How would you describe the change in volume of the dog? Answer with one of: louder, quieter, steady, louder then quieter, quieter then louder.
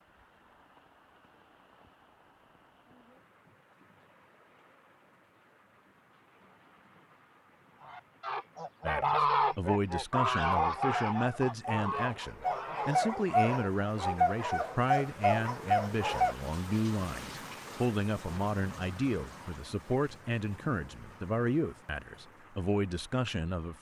louder.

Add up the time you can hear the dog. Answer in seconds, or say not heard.
6 s.